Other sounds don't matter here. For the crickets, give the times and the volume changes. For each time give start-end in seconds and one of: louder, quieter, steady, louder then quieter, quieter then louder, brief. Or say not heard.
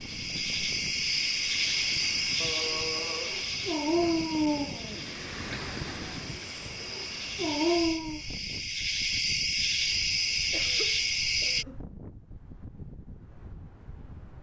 0.0-11.7 quieter then louder.